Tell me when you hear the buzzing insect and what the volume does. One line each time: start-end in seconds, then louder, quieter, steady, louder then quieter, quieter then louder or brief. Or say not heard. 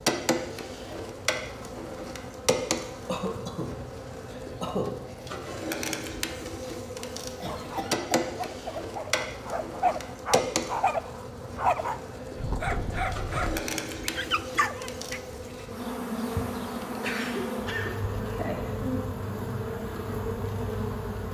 0.0-21.3 steady.